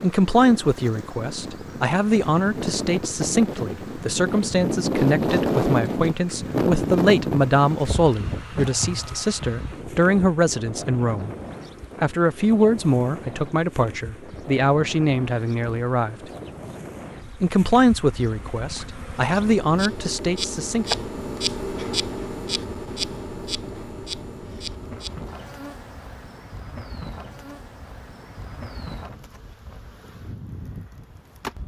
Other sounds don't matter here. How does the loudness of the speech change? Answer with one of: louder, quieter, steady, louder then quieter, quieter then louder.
steady.